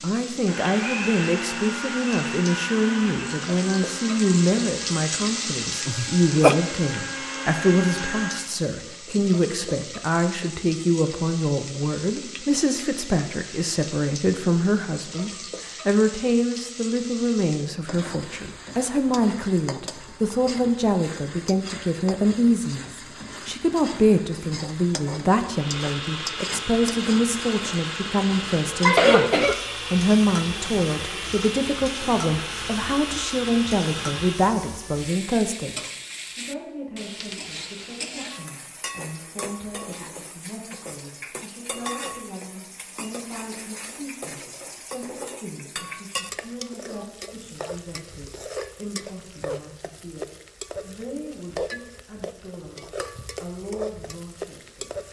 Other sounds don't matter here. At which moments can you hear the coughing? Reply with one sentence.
The coughing can be heard from 5.8 to 6.5 s and from 28.9 to 29.6 s.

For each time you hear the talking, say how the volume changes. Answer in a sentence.
You can hear the talking from 0.0 to 55.0 s, getting quieter.